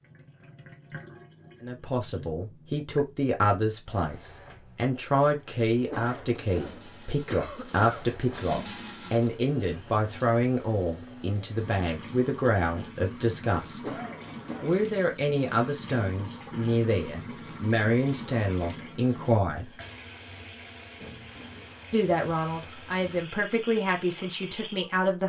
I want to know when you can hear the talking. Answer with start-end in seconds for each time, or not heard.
1.6-13.9, 14.6-19.8, 21.9-25.2.